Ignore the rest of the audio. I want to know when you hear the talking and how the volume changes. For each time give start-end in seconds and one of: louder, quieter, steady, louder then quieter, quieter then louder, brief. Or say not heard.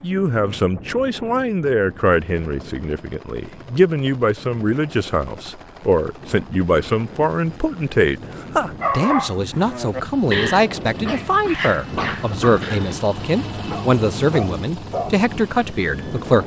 0.0-16.4 steady.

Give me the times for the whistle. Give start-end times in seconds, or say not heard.
not heard.